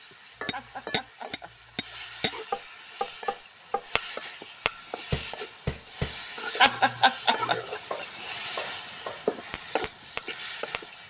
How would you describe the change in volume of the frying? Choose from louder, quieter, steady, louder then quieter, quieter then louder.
louder.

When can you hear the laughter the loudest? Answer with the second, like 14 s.
7 s.